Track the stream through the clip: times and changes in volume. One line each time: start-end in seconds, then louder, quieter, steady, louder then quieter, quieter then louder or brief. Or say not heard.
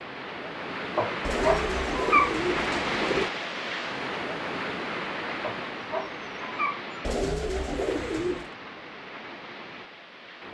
0.0-10.4 quieter.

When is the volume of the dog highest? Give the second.
2 s.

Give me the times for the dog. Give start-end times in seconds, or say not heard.
0.9-2.4, 5.4-7.0.